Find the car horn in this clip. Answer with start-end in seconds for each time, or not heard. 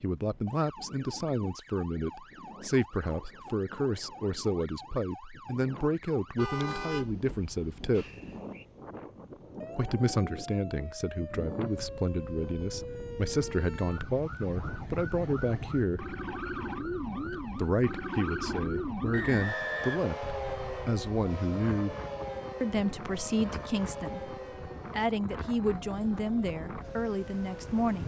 6.3-8.4.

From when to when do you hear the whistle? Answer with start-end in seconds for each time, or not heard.
7.9-8.7, 19.1-20.9.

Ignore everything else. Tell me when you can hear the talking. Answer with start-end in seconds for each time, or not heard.
0.0-8.1, 9.7-16.1, 17.6-21.9, 22.6-28.0.